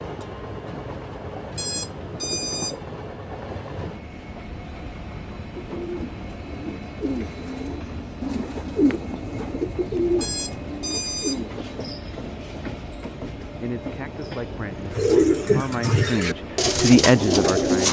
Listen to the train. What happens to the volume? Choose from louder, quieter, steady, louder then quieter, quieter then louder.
steady.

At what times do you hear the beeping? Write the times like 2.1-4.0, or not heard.
1.6-2.8, 10.2-11.4.